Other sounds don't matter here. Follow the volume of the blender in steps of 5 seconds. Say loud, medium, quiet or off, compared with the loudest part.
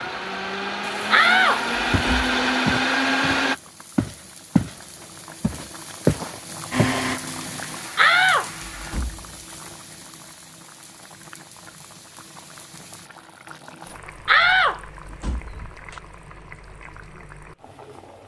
loud, medium, off, off.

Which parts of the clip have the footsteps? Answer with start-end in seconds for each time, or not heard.
1.9-4.8, 5.4-7.0.